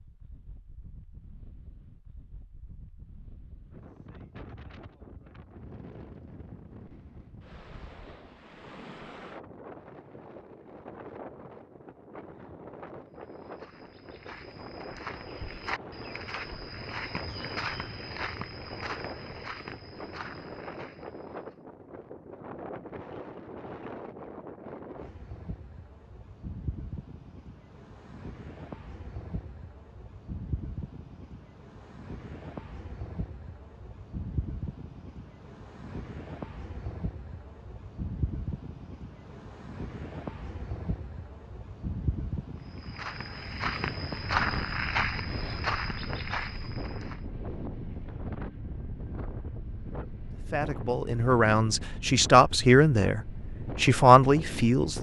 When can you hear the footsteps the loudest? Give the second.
44 s.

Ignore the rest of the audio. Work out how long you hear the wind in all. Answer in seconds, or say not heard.
55 s.